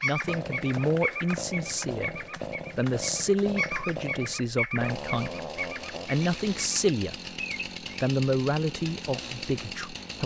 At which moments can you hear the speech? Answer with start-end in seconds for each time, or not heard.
0.0-7.2, 8.0-10.2.